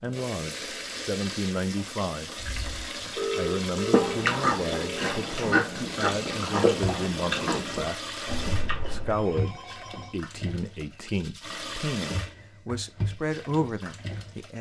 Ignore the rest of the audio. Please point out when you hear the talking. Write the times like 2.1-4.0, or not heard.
0.0-2.5, 3.4-14.5.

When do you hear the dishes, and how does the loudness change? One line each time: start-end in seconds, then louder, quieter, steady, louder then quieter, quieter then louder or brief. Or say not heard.
not heard.